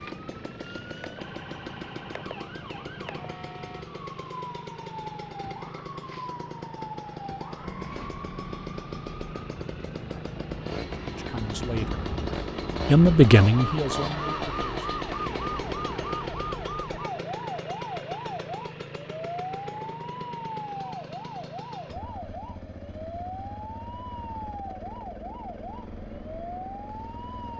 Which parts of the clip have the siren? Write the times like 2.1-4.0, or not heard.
0.0-27.5.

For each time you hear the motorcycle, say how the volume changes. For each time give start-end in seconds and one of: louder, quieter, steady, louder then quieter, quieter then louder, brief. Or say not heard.
0.0-27.5 louder then quieter.